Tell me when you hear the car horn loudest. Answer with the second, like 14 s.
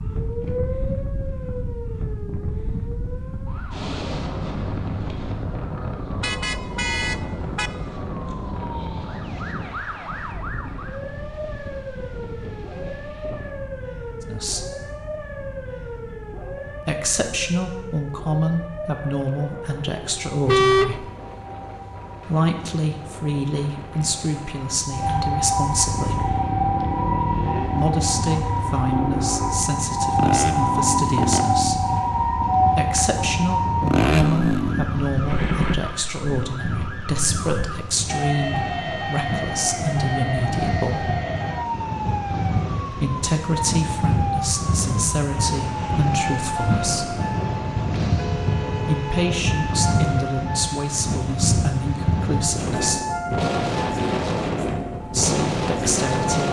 21 s.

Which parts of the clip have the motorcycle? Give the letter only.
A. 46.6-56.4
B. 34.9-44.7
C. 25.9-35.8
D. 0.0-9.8
C.